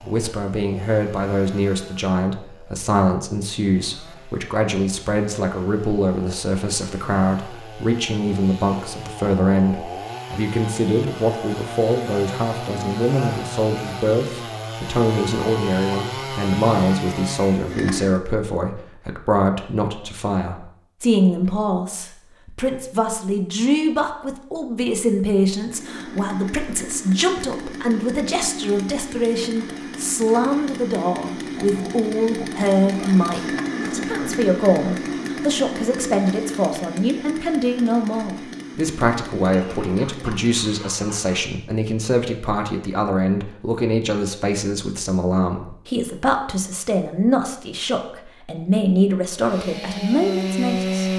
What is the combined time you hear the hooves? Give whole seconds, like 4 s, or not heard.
not heard.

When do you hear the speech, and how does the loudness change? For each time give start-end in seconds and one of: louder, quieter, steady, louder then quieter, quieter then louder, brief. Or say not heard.
0.0-51.1 steady.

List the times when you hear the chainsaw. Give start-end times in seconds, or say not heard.
0.0-18.2, 25.6-40.5, 49.3-51.1.